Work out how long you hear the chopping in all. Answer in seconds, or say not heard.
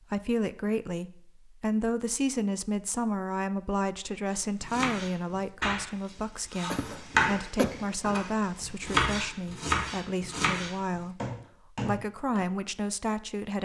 8 s.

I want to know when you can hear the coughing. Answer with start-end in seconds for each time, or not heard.
6.7-7.7.